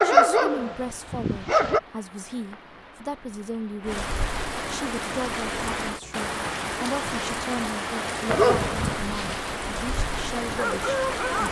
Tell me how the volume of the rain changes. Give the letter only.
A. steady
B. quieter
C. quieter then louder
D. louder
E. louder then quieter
D.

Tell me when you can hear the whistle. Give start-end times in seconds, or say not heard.
not heard.